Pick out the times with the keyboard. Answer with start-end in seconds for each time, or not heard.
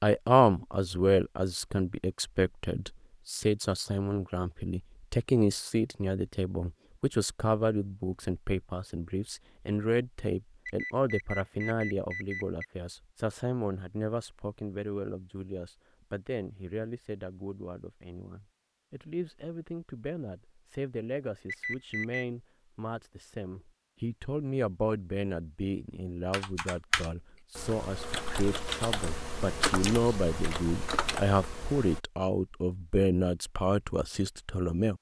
26.3-32.0.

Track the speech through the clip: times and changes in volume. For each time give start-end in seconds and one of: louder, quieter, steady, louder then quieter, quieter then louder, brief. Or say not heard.
0.0-34.9 quieter then louder.